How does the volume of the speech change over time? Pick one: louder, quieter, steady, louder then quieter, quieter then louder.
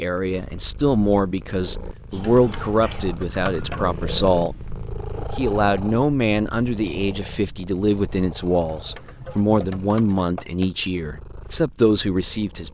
steady.